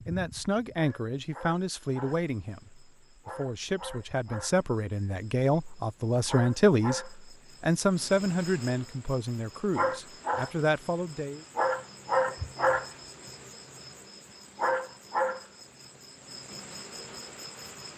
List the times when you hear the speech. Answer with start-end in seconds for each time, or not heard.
0.1-11.4.